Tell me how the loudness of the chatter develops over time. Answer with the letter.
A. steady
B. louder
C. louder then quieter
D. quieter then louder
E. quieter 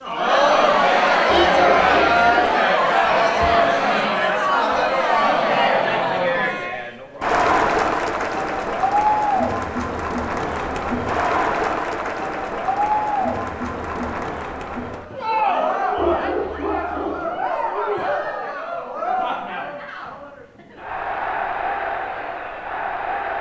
E.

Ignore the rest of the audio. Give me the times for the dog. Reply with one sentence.
The dog can be heard from 1.2 to 2.5 s and from 15.9 to 17.2 s.